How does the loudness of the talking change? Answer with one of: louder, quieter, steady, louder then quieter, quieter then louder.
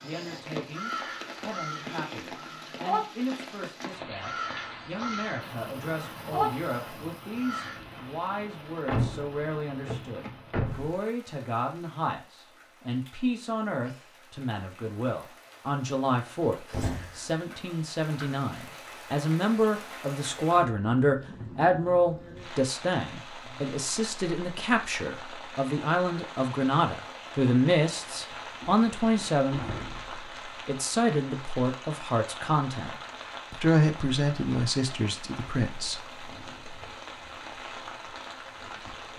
louder.